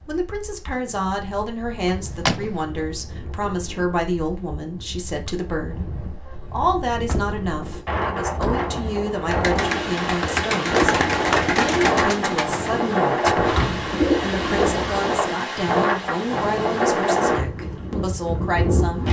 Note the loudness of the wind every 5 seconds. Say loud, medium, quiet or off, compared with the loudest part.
quiet, medium, loud, loud.